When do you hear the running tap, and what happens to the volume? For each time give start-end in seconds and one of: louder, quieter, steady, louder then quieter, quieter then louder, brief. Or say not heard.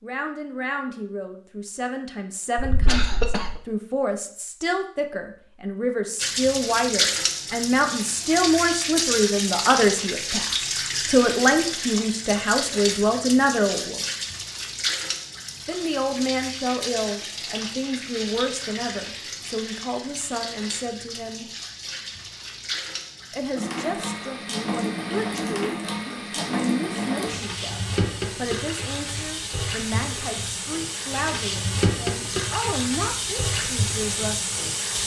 6.2-35.0 quieter then louder.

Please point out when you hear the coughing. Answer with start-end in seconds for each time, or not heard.
2.5-3.5.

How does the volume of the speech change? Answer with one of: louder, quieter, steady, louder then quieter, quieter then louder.
louder then quieter.